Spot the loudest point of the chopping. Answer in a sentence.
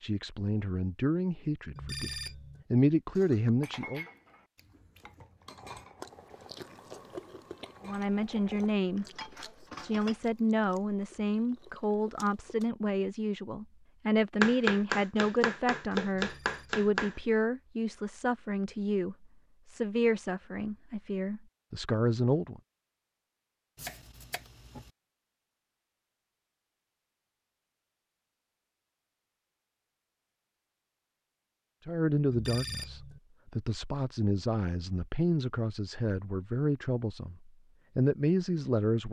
The loudest moment of the chopping is at 15 seconds.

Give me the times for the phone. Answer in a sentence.
The phone can be heard from 1.8 to 2.6 s, from 16.1 to 16.9 s and from 32.3 to 33.2 s.